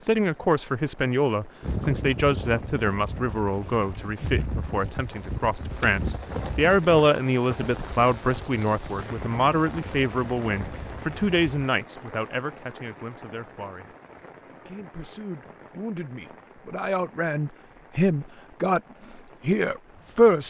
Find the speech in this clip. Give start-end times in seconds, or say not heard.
0.0-13.9, 14.7-20.4.